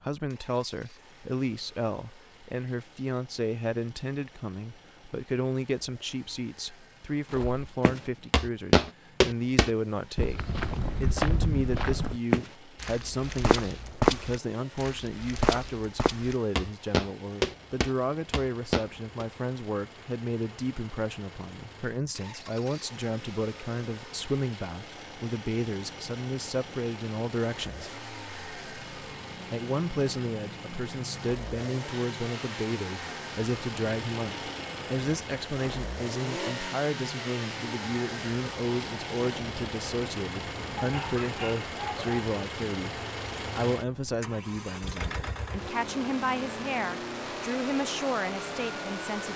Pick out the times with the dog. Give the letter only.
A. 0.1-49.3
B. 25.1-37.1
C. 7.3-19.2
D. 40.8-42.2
D.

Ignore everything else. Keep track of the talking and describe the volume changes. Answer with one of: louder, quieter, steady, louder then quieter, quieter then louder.
steady.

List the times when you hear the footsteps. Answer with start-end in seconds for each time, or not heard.
7.3-19.2.